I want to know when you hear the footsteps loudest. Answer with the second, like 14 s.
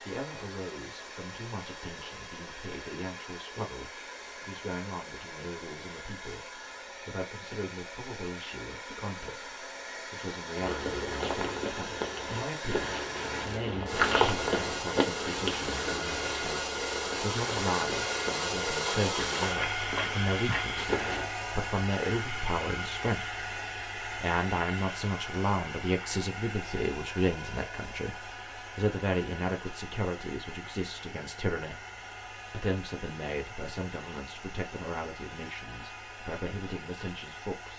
14 s.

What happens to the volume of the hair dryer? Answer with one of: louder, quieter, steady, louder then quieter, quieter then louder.
louder then quieter.